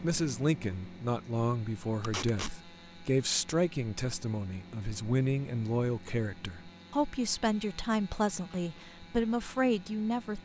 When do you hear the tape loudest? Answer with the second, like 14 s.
2 s.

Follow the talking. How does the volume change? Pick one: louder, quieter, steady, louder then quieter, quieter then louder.
steady.